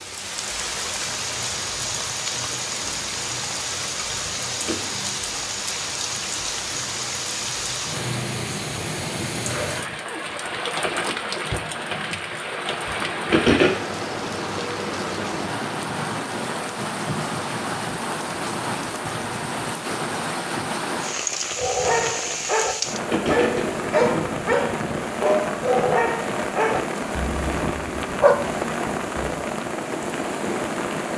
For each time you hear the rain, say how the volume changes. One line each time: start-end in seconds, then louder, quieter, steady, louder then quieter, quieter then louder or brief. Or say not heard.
0.0-31.1 steady.